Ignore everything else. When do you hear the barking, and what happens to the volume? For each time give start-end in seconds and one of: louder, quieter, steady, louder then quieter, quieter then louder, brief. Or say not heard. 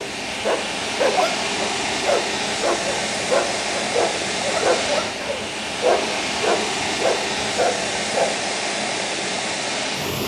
0.0-8.3 steady.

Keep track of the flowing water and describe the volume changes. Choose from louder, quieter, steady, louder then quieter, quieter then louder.
steady.